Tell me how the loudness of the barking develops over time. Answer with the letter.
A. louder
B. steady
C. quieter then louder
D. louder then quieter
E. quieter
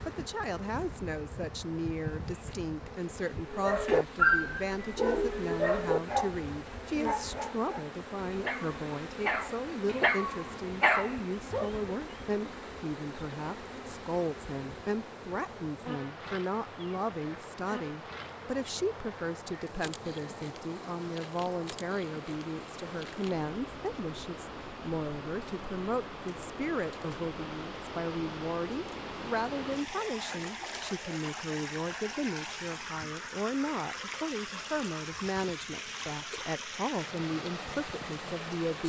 C.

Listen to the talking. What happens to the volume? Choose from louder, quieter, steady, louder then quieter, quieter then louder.
steady.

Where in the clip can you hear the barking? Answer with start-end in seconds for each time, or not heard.
3.5-11.9.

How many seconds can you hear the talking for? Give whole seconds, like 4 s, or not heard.
39 s.